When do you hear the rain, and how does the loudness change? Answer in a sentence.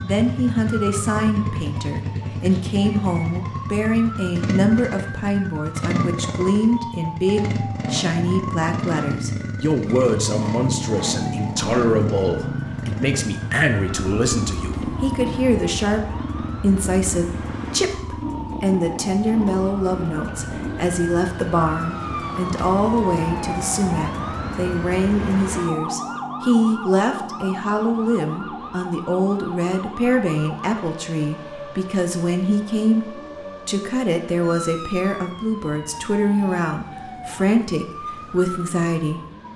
You can't hear the rain here.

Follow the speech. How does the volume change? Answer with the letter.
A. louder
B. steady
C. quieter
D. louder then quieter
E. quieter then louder
B.